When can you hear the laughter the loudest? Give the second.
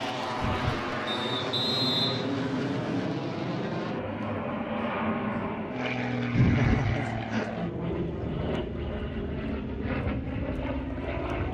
7 s.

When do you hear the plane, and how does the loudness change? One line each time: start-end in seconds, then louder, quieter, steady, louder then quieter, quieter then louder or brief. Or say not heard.
0.0-11.4 steady.